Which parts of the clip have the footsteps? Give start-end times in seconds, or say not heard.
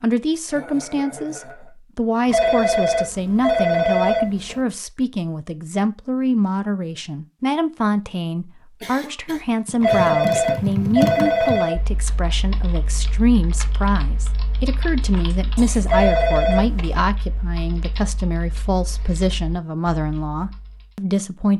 not heard.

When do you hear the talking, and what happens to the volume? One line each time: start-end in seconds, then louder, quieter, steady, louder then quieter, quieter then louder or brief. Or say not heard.
0.0-21.5 steady.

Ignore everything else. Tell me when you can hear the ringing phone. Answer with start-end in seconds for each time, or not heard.
2.2-4.6, 9.8-11.8, 15.8-16.9.